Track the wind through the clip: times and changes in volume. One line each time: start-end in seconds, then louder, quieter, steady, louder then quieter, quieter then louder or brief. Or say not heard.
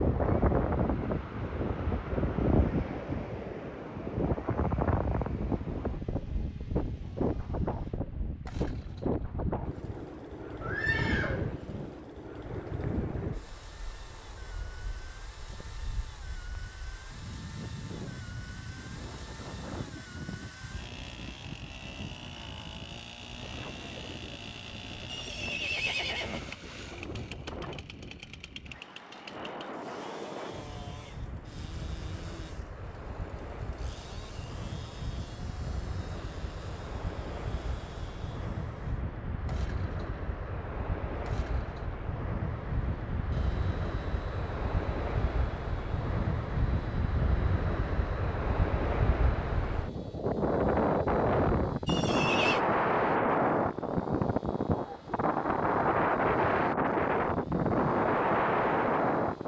0.0-59.4 quieter then louder.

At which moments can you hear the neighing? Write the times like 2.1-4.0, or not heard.
10.6-12.0, 25.1-26.4, 51.9-52.6.